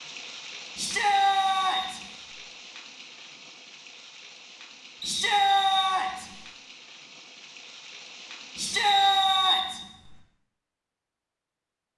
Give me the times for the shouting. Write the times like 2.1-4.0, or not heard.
0.8-2.0, 5.0-6.3, 8.6-9.8.